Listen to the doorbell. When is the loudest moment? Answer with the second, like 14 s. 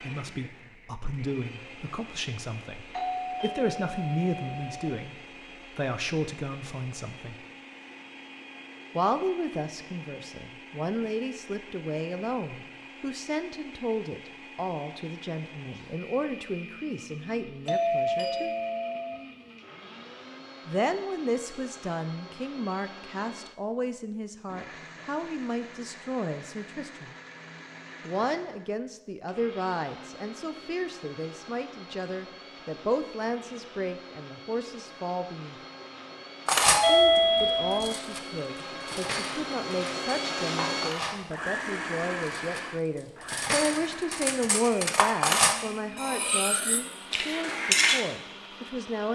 37 s.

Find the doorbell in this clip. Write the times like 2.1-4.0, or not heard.
2.9-4.9, 17.6-19.2, 36.6-38.0.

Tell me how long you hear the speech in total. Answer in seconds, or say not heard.
43 s.